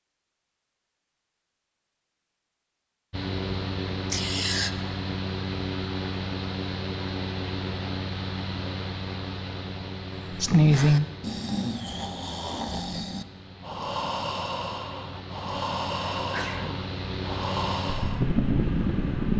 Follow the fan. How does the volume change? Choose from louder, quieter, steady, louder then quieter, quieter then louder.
quieter then louder.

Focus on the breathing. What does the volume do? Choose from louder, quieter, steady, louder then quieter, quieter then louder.
steady.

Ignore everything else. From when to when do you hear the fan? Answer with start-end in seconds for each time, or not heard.
3.1-19.3.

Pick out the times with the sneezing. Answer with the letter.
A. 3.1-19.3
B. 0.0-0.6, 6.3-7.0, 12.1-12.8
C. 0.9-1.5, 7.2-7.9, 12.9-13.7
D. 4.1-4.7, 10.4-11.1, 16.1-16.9
D.